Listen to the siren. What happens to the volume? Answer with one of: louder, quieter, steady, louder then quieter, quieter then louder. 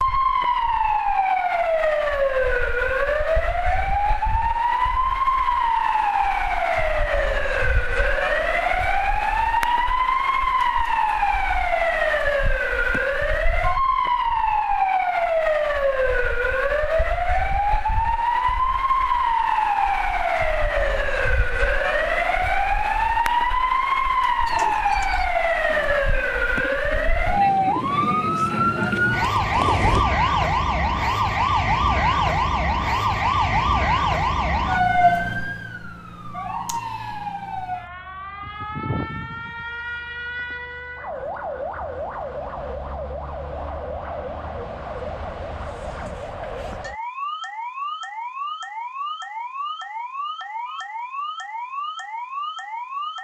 quieter.